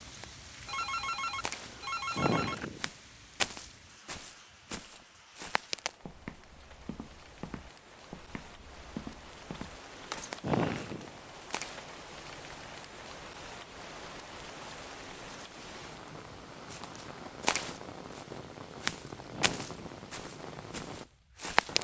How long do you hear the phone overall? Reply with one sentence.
You can hear the phone for 2 seconds altogether.